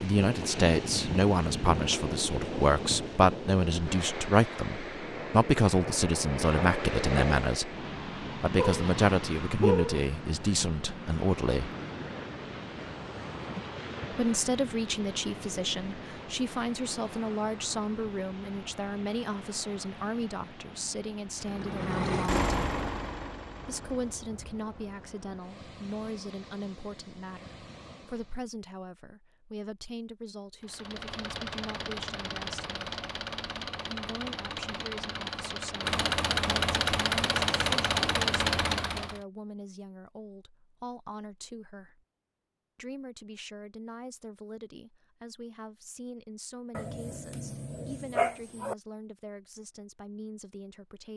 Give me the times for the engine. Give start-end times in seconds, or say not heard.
21.4-24.3, 30.6-39.2.